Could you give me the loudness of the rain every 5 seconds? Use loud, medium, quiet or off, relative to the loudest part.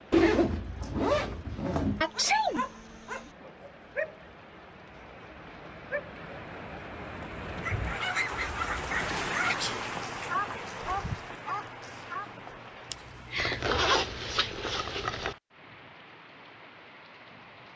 quiet, loud, loud, quiet.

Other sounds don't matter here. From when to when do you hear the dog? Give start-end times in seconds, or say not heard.
2.1-12.3.